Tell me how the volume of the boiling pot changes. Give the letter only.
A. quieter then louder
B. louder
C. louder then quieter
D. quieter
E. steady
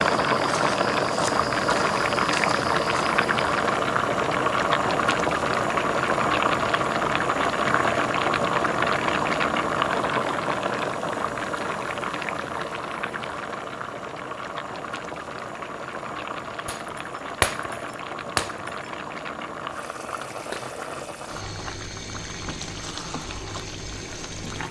D.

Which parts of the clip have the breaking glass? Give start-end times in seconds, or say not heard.
16.6-18.8.